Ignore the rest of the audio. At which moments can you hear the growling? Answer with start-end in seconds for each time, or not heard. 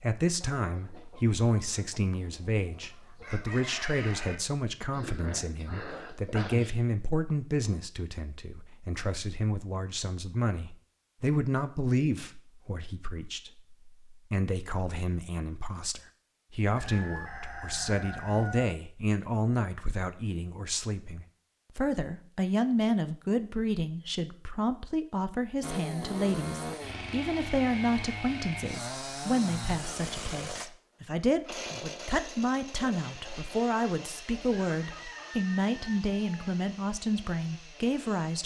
4.9-6.8.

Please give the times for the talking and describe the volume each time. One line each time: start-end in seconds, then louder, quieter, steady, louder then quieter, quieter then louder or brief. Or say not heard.
0.0-38.4 steady.